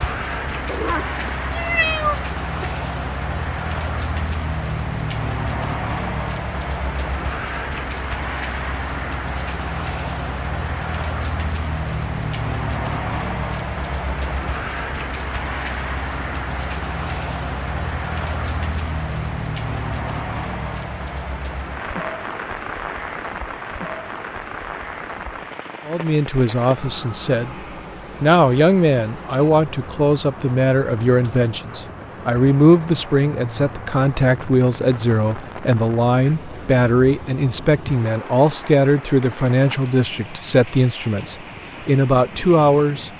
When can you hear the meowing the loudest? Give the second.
2 s.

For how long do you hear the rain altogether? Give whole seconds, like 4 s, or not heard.
43 s.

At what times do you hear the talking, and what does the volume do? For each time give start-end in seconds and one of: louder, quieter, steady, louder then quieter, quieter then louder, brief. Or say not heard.
25.9-27.6 brief
28.2-43.1 steady.